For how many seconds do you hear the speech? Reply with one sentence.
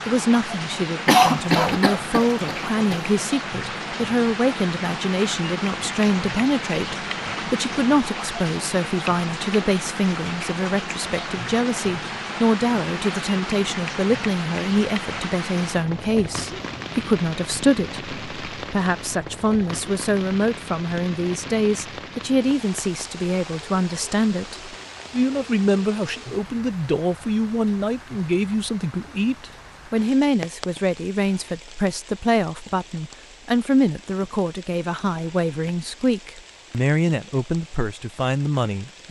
You can hear the speech for 39 seconds altogether.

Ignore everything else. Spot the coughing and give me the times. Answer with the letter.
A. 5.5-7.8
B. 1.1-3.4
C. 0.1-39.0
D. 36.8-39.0
B.